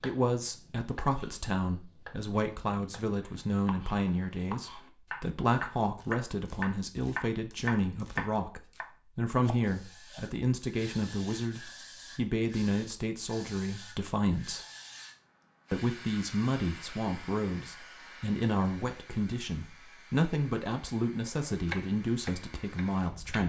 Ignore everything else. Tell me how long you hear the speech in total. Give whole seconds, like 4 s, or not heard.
22 s.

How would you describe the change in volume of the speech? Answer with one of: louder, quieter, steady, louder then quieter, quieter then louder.
steady.